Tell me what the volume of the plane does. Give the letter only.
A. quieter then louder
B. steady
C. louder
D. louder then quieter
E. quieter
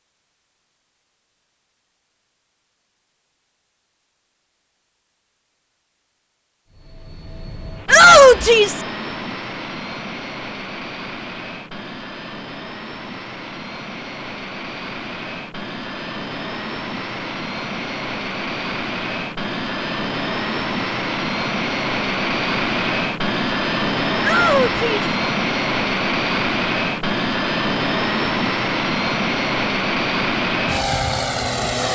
C.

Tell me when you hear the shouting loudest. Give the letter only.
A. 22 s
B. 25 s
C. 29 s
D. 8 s
D.